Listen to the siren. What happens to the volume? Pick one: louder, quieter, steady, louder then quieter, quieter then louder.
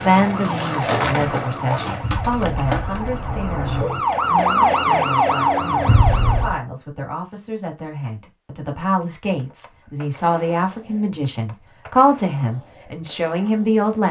louder.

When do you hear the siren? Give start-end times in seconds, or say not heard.
0.2-6.5.